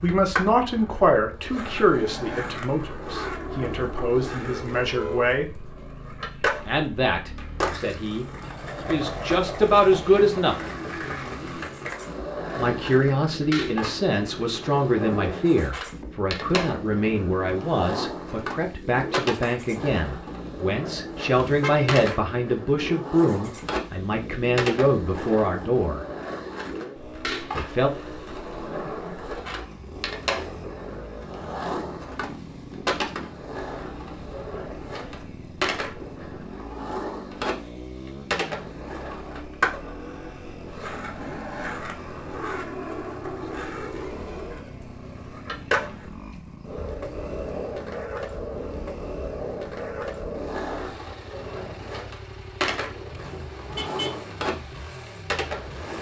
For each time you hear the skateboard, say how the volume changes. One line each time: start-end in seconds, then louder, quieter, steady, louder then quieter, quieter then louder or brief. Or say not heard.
0.0-55.9 steady.